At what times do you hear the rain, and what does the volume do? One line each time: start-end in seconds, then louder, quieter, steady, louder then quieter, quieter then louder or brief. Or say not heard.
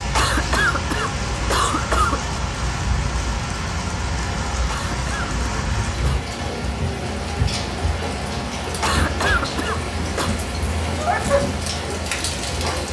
0.0-12.8 steady.